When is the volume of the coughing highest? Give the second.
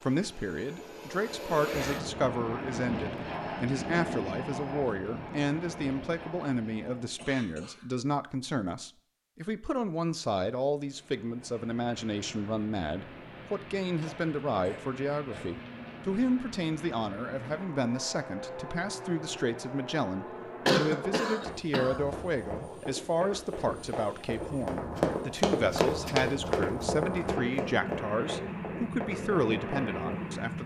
21 s.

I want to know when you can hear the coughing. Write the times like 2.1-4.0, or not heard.
7.2-7.8, 14.0-15.5, 20.6-22.1.